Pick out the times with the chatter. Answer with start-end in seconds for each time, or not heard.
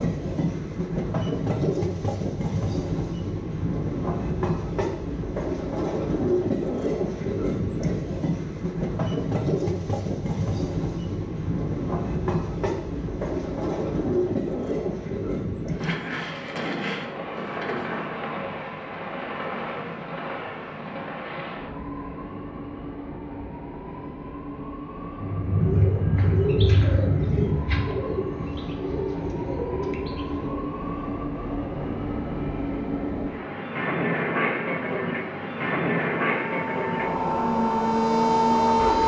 not heard.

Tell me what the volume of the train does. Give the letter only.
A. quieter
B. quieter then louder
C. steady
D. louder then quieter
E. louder
B.